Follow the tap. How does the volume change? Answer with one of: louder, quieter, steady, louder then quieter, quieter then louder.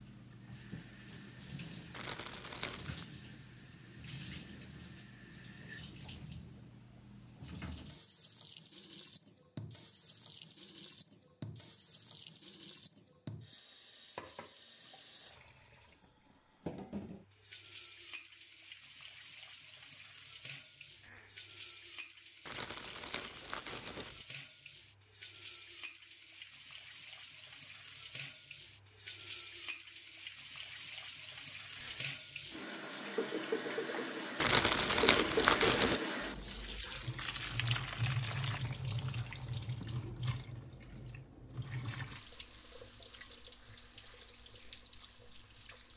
louder.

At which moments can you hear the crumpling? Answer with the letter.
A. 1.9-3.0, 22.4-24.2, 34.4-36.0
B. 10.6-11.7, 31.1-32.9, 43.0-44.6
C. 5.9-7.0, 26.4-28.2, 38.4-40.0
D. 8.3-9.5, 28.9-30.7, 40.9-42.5
A.